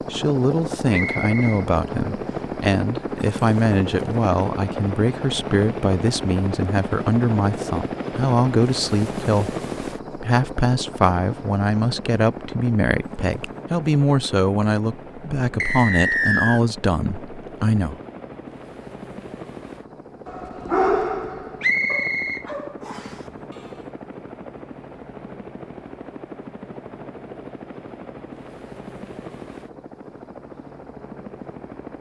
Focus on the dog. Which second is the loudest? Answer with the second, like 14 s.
21 s.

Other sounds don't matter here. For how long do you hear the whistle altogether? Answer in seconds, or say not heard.
3 s.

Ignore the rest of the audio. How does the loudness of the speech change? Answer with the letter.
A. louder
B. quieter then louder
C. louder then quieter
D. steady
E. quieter
D.